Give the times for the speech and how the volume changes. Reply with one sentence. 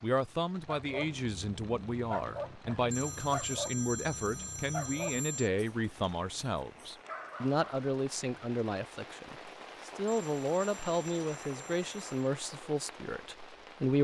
You can hear the speech from 0.0 to 13.9 s, at a steady volume.